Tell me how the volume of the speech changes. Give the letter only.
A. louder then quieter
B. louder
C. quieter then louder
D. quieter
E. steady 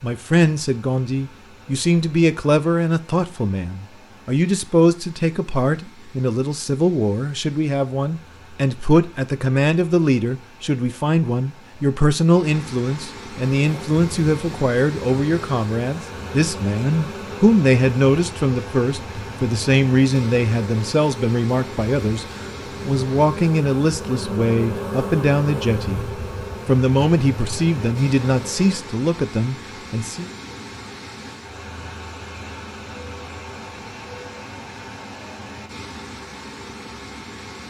E.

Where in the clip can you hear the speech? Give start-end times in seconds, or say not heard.
0.0-22.2, 22.9-30.3.